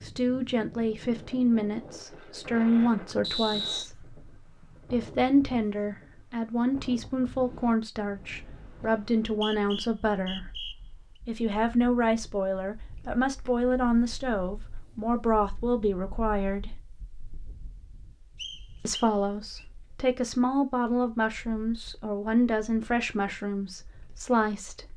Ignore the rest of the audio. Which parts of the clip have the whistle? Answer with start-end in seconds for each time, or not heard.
3.2-3.9, 9.2-10.8, 18.4-19.6.